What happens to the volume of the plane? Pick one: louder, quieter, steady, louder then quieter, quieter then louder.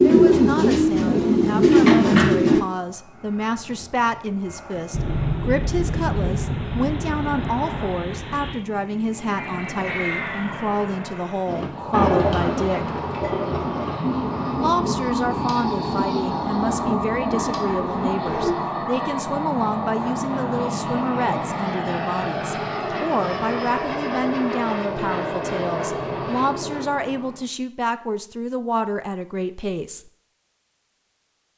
louder.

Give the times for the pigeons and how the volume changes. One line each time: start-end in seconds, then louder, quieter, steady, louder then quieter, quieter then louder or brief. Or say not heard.
0.0-2.6 brief
11.4-18.6 quieter.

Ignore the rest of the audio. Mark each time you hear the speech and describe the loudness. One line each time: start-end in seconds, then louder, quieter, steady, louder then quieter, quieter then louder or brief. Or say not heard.
0.0-12.9 steady
14.6-30.1 steady.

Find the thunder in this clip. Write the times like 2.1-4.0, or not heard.
4.9-8.7.